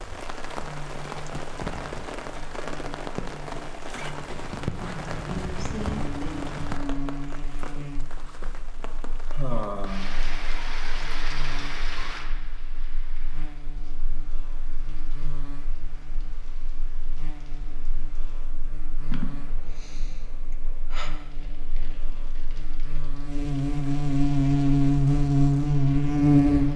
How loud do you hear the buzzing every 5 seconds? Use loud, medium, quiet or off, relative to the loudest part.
quiet, quiet, quiet, quiet, medium, loud.